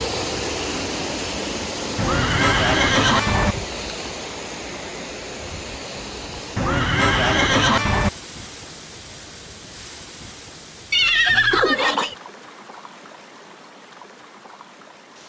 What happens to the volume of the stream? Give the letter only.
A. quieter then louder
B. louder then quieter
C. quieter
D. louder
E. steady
C.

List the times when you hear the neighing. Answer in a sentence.
You can hear the neighing from 1.9 to 3.5 s, from 6.5 to 8.1 s and from 10.9 to 12.2 s.